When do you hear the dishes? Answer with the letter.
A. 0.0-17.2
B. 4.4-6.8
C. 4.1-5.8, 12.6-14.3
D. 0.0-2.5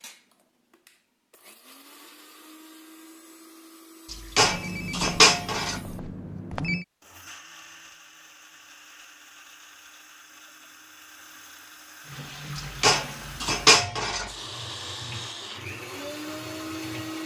C.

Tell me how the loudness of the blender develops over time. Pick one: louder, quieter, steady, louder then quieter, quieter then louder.
louder.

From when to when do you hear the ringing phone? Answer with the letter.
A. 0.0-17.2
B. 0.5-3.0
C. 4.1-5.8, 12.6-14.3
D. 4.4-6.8
D.